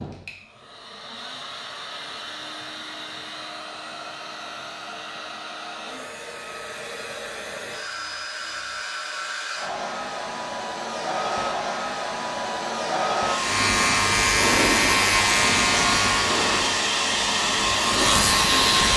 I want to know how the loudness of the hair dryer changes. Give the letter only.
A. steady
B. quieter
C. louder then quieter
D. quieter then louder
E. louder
E.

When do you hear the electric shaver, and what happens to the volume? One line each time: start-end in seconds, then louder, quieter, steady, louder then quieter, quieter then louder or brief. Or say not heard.
13.3-18.9 quieter then louder.